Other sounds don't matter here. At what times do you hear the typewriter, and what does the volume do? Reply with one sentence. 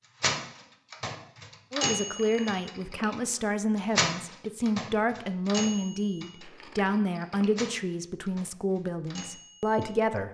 The typewriter can be heard from 0.2 to 6.9 s, getting louder then quieter; and briefly from 7.5 to 10.1 s.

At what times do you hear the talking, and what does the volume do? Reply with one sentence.
The talking can be heard from 1.7 to 10.2 s, at a steady volume.